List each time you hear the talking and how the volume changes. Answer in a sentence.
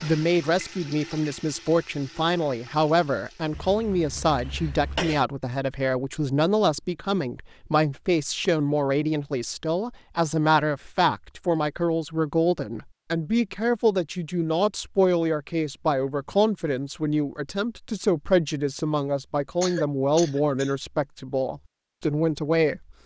The talking can be heard from 0.0 to 22.9 s, at a steady volume.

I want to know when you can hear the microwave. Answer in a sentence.
The microwave can't be heard in this clip.